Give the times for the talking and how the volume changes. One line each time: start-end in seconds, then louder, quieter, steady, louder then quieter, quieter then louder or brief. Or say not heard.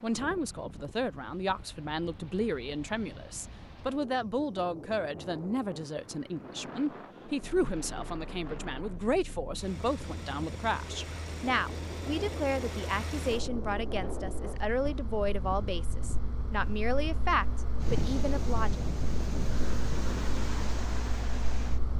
0.0-18.8 steady.